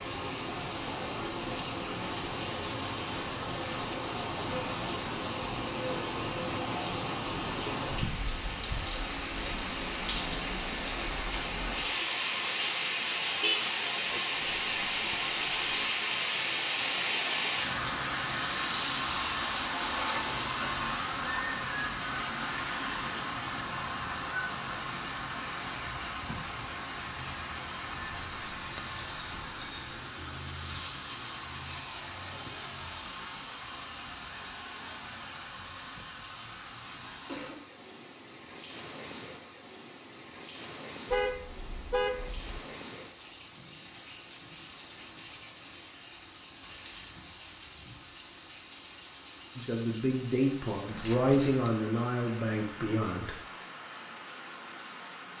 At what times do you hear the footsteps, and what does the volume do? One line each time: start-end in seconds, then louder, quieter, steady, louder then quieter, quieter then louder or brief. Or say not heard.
not heard.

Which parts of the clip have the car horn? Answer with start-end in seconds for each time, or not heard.
13.4-14.2, 41.1-42.6.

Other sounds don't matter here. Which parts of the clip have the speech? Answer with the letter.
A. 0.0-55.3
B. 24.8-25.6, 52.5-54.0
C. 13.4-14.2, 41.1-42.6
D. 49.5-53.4
D.